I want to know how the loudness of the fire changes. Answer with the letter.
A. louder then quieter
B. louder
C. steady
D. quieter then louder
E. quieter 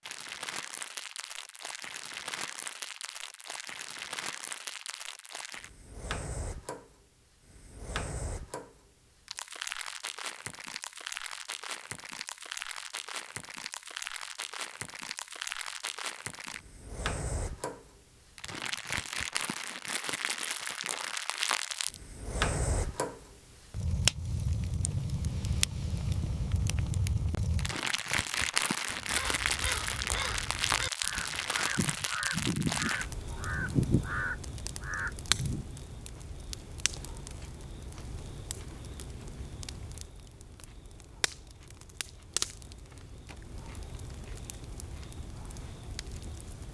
A.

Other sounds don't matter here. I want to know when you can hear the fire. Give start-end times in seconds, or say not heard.
0.0-46.6.